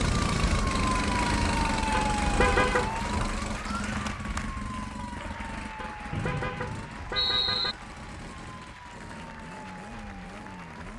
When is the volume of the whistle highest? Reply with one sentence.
The loudest moment of the whistle is at 7 seconds.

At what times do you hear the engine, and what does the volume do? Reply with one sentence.
You can hear the engine from 0.0 to 10.9 s, getting quieter.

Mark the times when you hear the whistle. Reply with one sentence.
The whistle can be heard from 6.1 to 7.8 s.